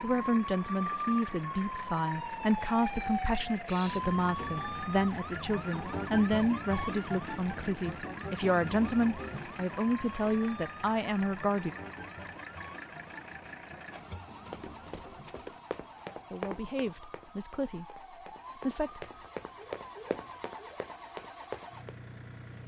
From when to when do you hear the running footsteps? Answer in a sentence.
The running footsteps can be heard from 14.4 to 21.9 s.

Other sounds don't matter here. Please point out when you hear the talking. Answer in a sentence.
You can hear the talking from 0.0 to 11.8 s and from 16.3 to 19.1 s.